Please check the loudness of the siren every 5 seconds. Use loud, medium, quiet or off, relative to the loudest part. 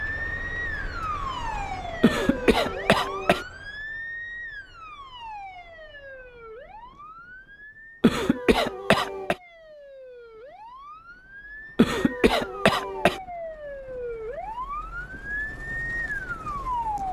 loud, quiet, medium, loud.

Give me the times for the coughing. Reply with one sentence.
You can hear the coughing from 2.0 to 3.5 s, from 8.0 to 9.3 s and from 11.8 to 13.2 s.